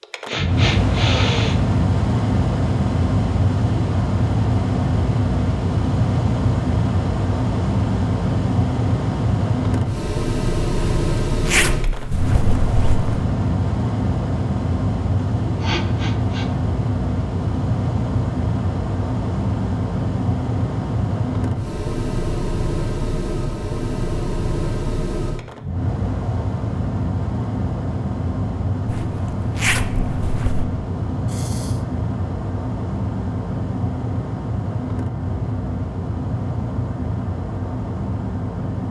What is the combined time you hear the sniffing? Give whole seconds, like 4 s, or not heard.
3 s.